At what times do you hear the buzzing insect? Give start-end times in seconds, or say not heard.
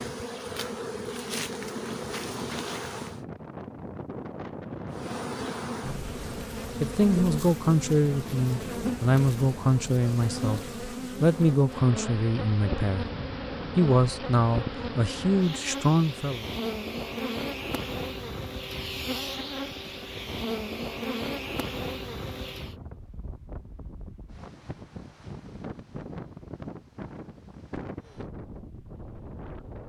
0.0-3.2, 4.9-22.8.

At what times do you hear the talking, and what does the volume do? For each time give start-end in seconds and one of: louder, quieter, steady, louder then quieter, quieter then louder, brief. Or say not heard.
6.8-13.1 steady
13.8-16.4 brief.